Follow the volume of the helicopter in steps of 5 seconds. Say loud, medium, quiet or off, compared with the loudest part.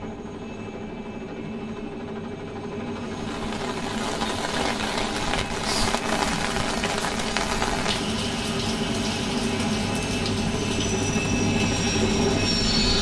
medium, medium, loud.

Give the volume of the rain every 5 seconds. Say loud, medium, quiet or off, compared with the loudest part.
loud, loud, medium.